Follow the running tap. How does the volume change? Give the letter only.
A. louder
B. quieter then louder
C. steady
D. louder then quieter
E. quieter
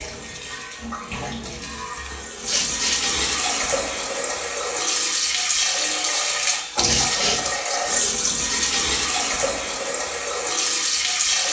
A.